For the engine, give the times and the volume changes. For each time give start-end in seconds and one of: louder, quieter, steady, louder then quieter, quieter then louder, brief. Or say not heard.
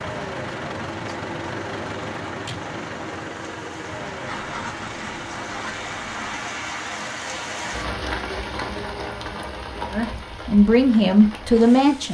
0.0-6.3 quieter.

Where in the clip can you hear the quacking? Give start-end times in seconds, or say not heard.
4.2-6.4.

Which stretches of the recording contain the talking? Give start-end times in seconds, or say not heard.
9.9-12.0.